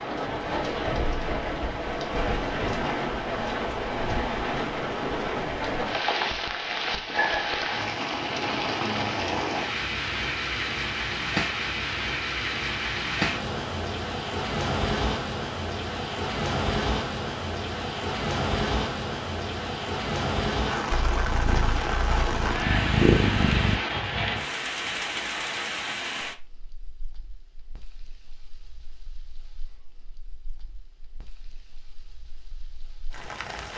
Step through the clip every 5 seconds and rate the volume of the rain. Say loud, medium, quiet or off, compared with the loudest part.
loud, loud, loud, loud, loud, medium, quiet.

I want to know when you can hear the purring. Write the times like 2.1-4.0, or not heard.
20.9-23.8.